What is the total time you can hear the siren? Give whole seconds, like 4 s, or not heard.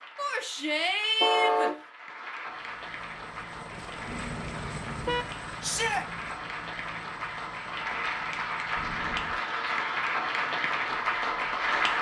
not heard.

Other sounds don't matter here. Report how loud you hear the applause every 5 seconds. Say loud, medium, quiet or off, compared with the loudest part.
quiet, medium, loud.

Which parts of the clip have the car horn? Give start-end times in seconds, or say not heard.
1.2-1.8, 4.0-5.9, 8.8-9.4.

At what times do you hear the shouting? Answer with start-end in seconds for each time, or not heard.
0.1-1.7, 5.6-6.0, 9.4-9.9.